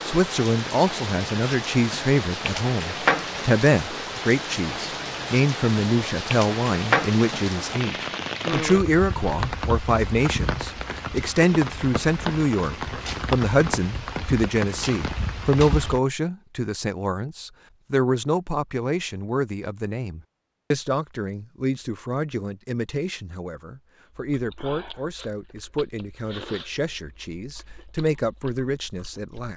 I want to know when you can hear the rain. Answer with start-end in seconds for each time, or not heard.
0.0-16.0.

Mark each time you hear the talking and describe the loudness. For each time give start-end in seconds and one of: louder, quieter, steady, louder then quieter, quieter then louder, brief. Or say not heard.
0.0-29.5 quieter.